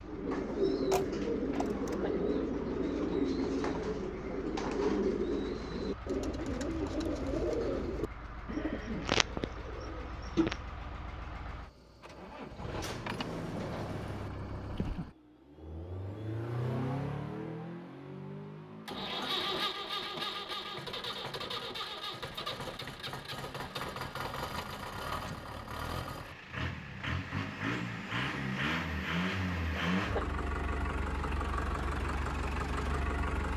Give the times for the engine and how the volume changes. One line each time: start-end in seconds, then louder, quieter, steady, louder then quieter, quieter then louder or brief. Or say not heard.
0.0-33.5 louder.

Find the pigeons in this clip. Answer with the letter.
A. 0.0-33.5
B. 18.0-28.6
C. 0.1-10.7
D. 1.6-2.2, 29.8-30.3
C.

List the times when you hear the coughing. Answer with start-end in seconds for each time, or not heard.
1.6-2.2, 29.8-30.3.